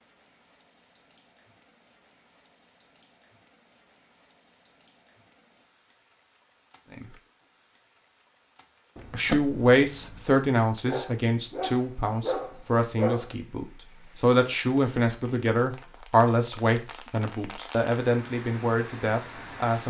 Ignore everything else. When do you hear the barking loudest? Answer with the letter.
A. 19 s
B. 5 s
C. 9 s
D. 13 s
D.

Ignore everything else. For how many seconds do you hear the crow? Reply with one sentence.
The crow can't be heard in this clip.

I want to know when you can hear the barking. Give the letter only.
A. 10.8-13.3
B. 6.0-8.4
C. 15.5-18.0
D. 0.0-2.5
A.